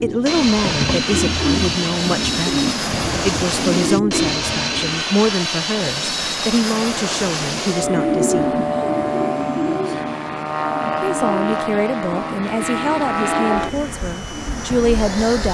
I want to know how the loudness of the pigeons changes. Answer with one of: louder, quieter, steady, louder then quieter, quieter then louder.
quieter.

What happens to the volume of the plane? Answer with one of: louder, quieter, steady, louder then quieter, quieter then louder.
steady.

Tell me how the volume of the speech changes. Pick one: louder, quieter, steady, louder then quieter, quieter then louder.
steady.